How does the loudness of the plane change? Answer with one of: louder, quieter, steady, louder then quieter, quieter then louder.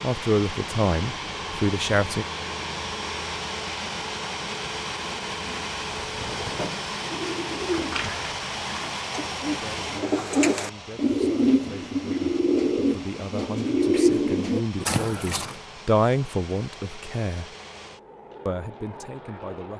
quieter.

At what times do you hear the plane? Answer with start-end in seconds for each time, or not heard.
0.0-19.7.